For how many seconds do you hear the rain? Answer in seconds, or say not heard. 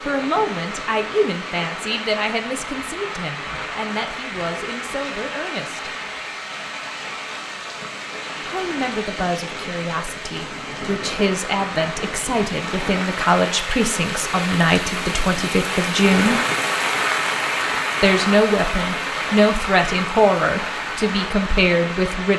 22 s.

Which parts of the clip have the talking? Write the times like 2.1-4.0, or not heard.
0.1-5.9, 8.5-16.4, 18.0-22.3.